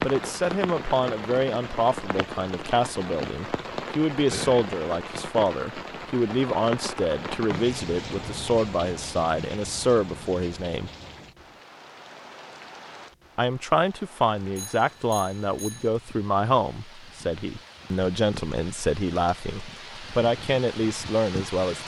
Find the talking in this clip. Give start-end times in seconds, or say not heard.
0.0-10.9, 13.3-21.8.